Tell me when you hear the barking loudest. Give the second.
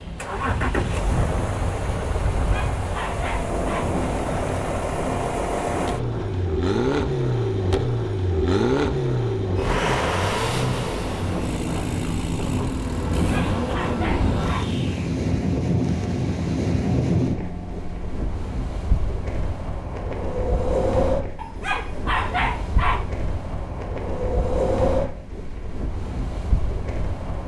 22 s.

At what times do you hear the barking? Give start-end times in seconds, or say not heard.
2.4-4.0, 13.2-14.8, 21.4-23.1.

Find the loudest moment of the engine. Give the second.
9 s.